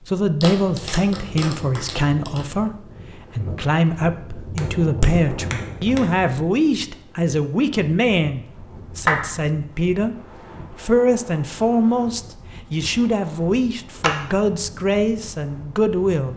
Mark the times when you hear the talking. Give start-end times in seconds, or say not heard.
0.1-2.7, 3.4-10.2, 10.8-16.3.